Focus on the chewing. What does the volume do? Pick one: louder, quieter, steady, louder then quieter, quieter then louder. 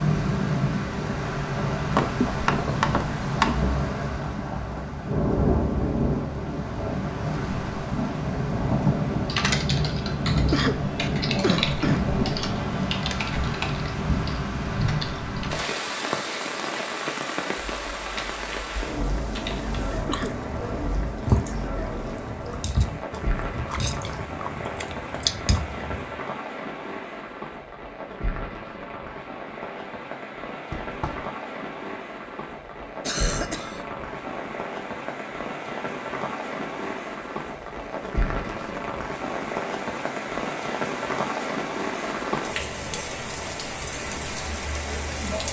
quieter then louder.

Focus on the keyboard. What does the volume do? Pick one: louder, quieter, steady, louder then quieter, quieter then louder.
quieter.